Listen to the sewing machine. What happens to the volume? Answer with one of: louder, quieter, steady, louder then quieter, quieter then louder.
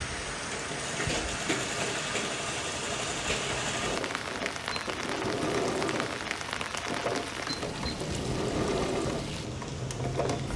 steady.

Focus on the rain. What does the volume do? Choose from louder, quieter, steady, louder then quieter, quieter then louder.
steady.